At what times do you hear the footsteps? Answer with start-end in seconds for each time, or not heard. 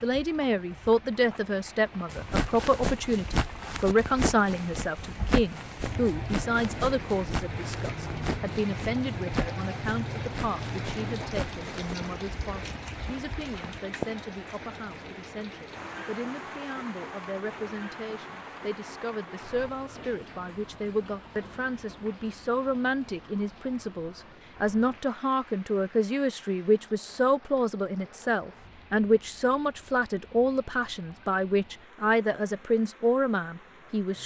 2.1-13.8.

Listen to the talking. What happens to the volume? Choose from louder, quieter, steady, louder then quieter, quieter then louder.
quieter then louder.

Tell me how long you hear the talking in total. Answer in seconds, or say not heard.
34 s.